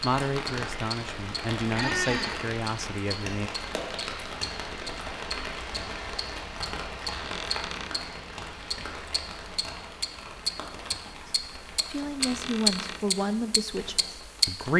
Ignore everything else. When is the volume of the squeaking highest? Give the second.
2 s.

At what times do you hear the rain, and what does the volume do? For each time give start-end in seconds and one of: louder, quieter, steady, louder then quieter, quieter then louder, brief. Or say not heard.
0.0-14.7 quieter.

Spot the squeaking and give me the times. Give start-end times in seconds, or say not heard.
1.7-2.5, 7.1-8.0, 12.2-13.0.